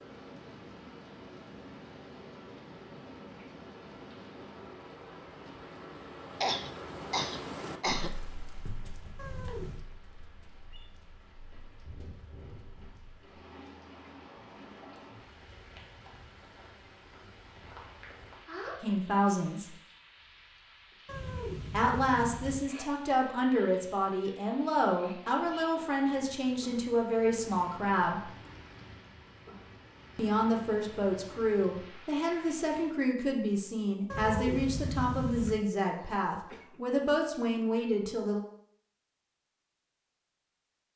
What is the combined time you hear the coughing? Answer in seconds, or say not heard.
3 s.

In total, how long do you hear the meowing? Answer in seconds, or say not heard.
4 s.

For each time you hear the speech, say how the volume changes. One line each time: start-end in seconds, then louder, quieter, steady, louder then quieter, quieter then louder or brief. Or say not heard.
18.8-19.8 brief
21.7-28.3 steady
30.1-38.4 steady.